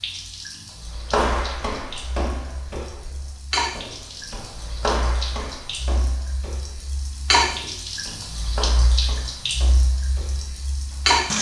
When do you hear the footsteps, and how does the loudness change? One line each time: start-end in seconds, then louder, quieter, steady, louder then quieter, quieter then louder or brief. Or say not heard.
0.8-11.2 quieter.